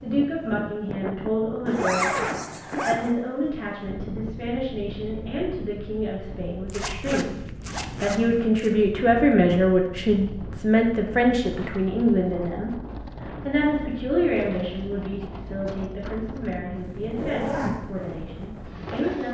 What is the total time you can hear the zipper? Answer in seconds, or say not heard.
4 s.